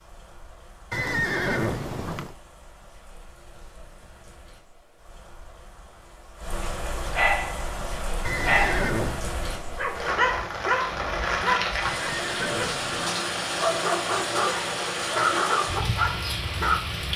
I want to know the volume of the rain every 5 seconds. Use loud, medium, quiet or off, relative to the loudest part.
quiet, medium, loud, loud.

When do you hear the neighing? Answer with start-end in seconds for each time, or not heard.
0.9-2.4, 8.2-9.2, 11.8-13.0.